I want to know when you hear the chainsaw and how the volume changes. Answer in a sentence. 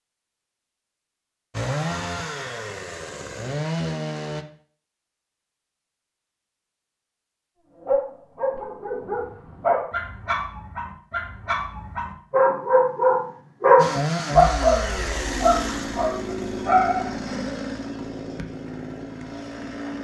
The chainsaw can be heard briefly from 1.5 to 4.5 s; and from 13.8 to 19.9 s, getting quieter.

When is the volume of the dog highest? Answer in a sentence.
The loudest moment of the dog is at 14 seconds.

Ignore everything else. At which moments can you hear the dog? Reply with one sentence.
You can hear the dog from 7.8 to 17.4 s.